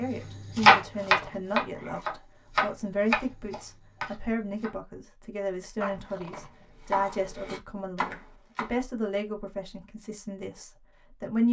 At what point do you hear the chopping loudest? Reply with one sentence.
The volume of the chopping peaks at 1 second.